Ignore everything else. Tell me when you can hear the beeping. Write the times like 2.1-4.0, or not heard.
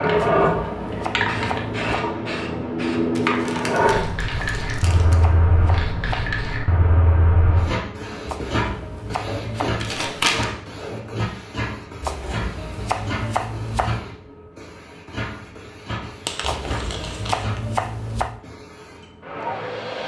not heard.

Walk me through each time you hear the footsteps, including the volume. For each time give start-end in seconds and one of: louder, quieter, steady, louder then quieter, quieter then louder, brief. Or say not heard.
not heard.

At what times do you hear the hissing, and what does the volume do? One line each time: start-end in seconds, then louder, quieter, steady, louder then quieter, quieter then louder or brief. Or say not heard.
0.0-20.0 quieter.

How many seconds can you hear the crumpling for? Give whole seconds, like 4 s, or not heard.
4 s.